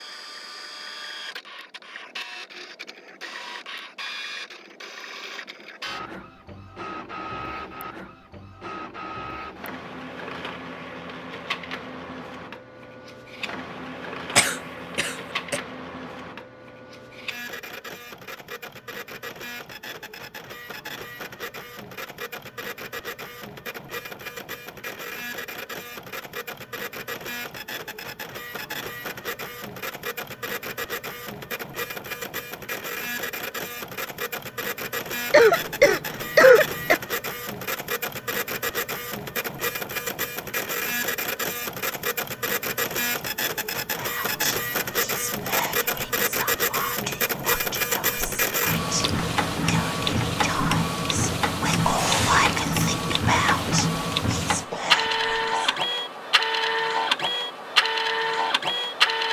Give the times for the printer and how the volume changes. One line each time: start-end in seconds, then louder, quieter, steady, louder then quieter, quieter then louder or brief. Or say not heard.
0.0-59.2 louder.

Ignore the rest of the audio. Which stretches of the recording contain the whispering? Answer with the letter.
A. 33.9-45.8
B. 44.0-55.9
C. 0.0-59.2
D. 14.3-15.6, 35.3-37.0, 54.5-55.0
B.